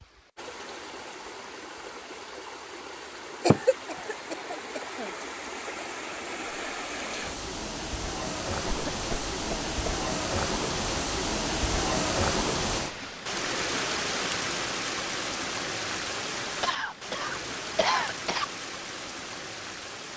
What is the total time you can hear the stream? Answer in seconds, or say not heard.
20 s.